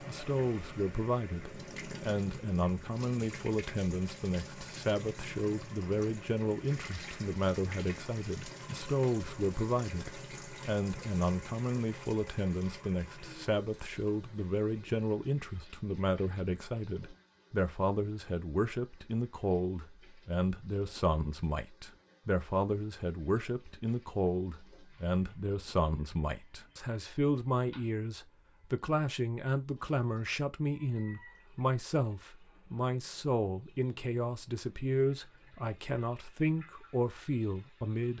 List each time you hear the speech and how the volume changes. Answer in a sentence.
The speech can be heard from 0.1 to 38.1 s, at a steady volume.